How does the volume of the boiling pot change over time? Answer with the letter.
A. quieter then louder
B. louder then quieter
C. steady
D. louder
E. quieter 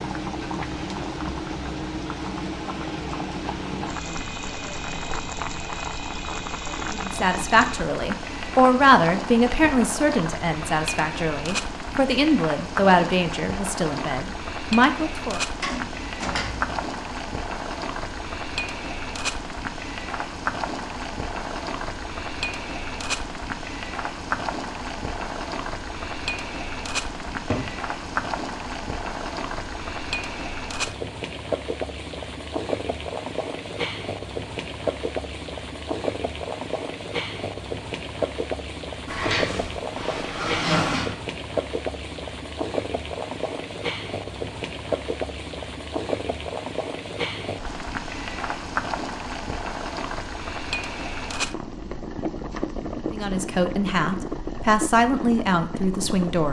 C.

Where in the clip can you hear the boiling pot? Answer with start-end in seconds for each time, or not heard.
0.0-56.4.